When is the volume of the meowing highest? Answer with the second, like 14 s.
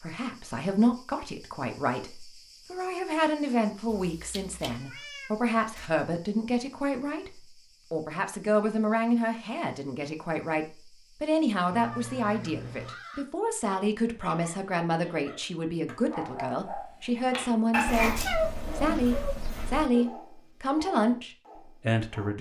18 s.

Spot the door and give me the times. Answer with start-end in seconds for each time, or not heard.
not heard.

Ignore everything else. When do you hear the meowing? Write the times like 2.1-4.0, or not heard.
4.0-5.8, 11.7-12.9, 17.9-19.9.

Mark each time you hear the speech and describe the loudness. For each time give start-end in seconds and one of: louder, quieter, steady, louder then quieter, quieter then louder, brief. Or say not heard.
0.0-22.3 steady.